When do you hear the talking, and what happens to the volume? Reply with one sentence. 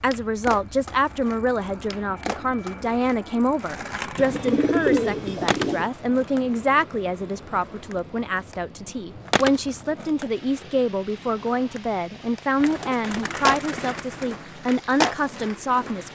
You can hear the talking from 0.0 to 16.0 s, at a steady volume.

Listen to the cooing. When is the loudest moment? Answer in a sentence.
The volume of the cooing peaks at 5 seconds.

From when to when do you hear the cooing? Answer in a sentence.
The cooing can be heard from 4.2 to 5.9 s and from 12.6 to 14.4 s.